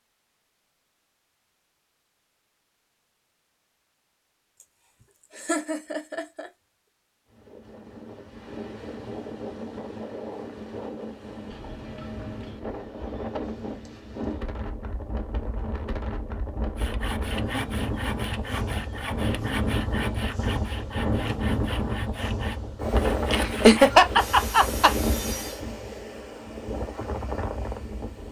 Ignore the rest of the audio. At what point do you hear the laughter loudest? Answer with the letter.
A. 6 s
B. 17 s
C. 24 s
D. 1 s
C.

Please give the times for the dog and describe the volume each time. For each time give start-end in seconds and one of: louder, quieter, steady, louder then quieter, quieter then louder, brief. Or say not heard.
not heard.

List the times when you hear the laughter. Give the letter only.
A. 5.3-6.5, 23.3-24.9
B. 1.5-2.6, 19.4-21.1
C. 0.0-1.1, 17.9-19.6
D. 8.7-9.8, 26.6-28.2
A.